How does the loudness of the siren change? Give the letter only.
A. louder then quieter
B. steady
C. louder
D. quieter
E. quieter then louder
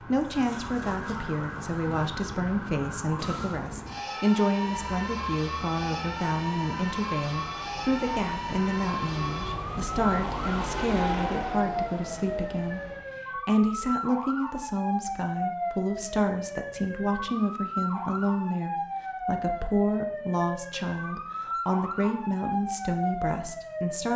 B.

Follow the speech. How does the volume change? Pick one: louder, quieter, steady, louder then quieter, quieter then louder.
steady.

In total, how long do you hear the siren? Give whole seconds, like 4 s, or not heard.
24 s.